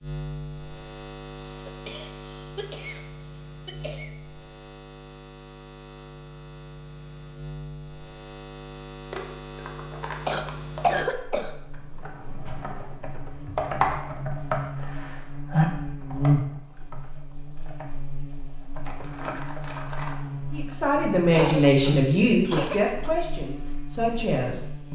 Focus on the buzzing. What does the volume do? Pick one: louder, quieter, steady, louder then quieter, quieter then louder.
louder.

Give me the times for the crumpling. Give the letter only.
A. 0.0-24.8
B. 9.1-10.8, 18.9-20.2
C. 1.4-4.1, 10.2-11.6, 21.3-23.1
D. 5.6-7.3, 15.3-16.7
B.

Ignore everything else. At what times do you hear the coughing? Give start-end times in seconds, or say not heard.
1.4-4.1, 10.2-11.6, 21.3-23.1.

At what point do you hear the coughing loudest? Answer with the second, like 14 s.
11 s.